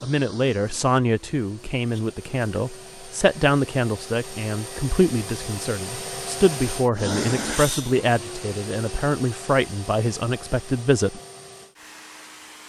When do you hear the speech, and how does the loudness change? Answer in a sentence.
The speech can be heard from 0.0 to 11.2 s, at a steady volume.